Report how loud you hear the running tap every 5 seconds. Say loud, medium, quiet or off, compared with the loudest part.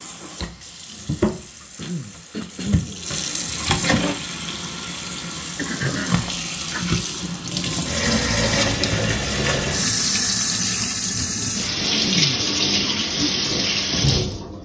medium, loud, loud.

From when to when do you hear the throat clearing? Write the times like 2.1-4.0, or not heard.
1.2-3.0, 5.5-6.9, 11.4-12.4.